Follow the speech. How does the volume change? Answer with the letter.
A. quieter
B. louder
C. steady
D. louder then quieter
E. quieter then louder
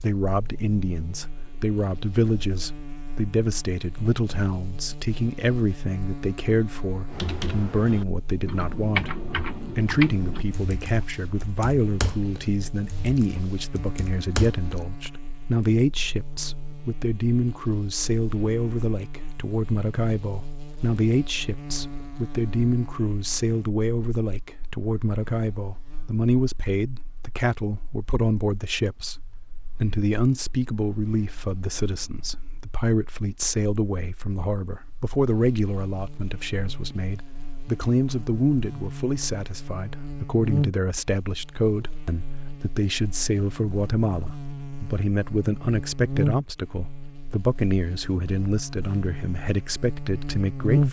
C.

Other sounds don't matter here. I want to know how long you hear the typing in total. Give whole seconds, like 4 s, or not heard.
8 s.